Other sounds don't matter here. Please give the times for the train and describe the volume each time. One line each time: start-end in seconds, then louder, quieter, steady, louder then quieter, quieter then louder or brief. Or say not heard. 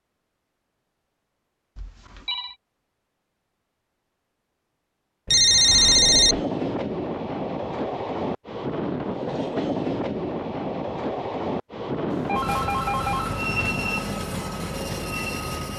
5.5-15.7 steady.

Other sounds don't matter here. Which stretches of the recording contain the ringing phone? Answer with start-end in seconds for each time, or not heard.
1.8-2.5, 5.2-6.4, 12.1-13.8.